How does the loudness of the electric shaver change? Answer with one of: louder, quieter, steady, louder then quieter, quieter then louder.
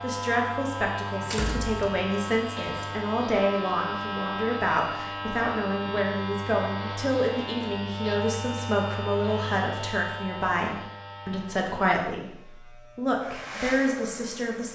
quieter.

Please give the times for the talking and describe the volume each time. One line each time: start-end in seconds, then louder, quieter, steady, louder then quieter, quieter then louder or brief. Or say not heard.
0.0-14.7 steady.